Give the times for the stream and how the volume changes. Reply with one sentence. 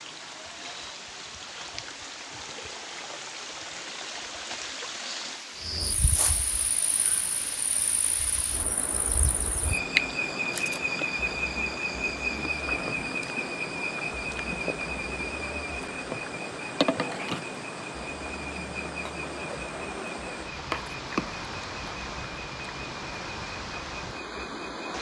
You can hear the stream from 0.0 to 24.9 s, at a steady volume.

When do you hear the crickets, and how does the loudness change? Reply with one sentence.
You can hear the crickets from 5.5 to 24.9 s, getting louder then quieter.